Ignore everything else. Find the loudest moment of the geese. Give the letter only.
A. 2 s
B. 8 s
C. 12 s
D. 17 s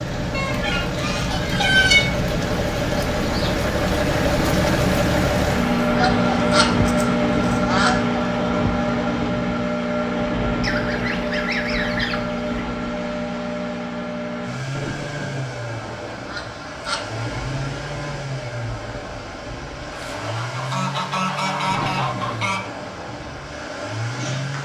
A.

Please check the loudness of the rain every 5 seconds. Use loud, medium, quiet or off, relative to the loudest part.
loud, loud, medium, medium, medium.